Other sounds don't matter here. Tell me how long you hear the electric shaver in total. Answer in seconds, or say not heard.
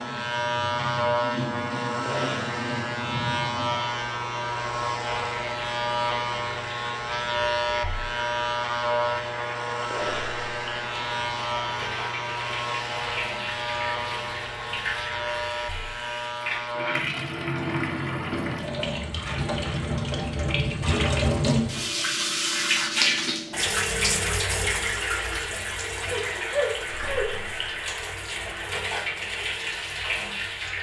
17 s.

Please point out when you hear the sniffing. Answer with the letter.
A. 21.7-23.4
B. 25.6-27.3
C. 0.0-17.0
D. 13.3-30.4
B.